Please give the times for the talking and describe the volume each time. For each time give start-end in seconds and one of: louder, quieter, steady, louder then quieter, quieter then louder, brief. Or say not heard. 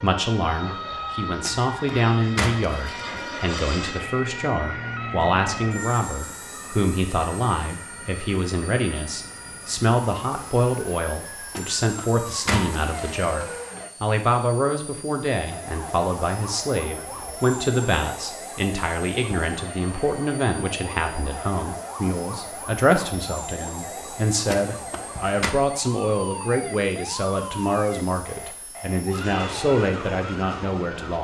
0.0-31.1 steady.